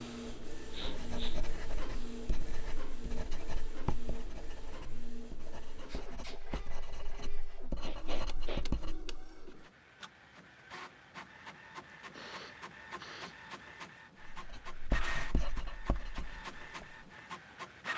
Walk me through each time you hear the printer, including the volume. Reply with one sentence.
The printer can be heard from 0.0 to 17.9 s, getting quieter then louder.